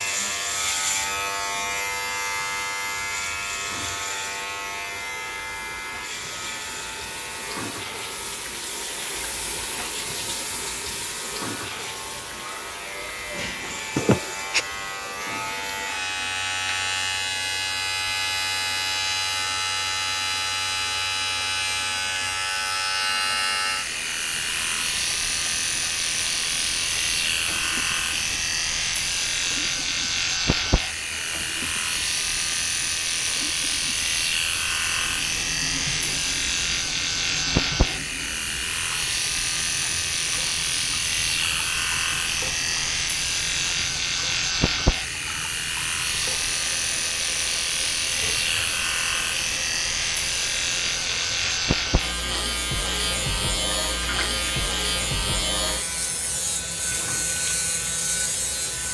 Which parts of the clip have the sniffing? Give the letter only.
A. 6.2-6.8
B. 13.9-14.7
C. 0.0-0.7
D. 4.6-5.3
B.